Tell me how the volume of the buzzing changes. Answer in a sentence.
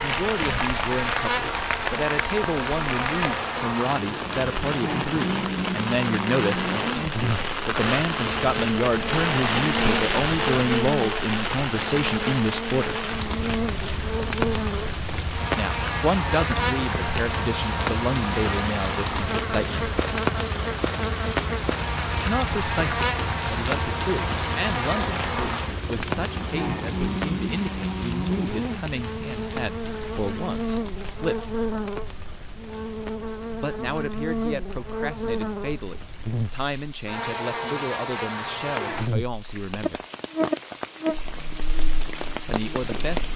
The volume of the buzzing stays about the same.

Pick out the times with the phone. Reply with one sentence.
You can't hear the phone here.